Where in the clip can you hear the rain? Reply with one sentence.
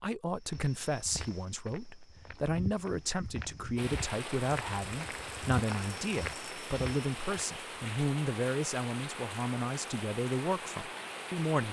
You can hear the rain from 3.8 to 11.6 s.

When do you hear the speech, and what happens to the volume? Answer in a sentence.
The speech can be heard from 0.0 to 11.6 s, at a steady volume.